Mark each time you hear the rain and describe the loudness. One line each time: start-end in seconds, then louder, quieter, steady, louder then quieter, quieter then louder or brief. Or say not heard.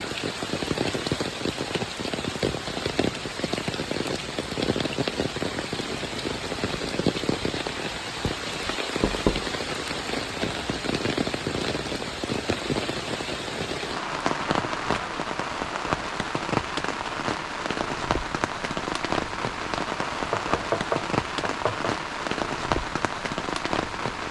0.0-24.2 steady.